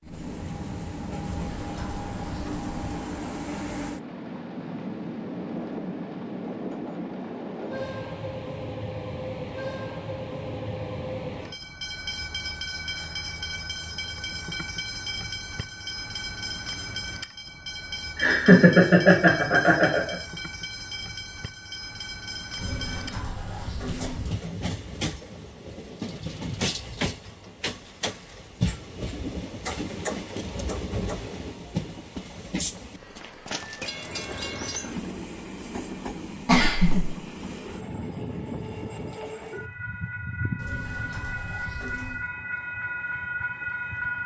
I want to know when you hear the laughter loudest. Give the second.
19 s.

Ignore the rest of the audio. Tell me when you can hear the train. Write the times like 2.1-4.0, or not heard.
0.0-44.2.